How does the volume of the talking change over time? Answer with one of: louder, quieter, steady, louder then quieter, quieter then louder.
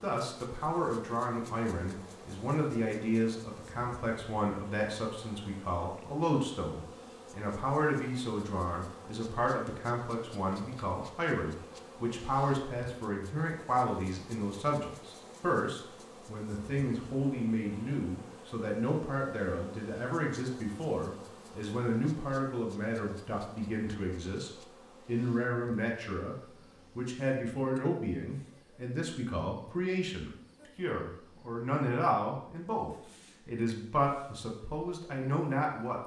steady.